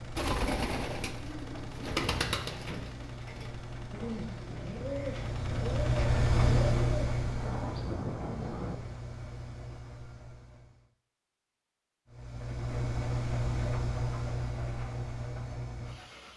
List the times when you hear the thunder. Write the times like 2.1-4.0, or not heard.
7.2-8.8.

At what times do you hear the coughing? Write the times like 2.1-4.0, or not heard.
not heard.